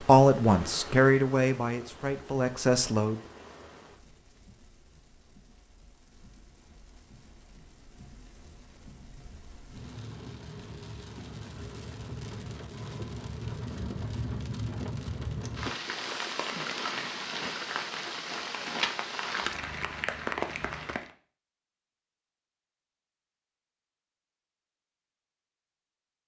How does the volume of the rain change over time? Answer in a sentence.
The volume of the rain goes down, then up.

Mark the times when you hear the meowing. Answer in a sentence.
You can't hear the meowing here.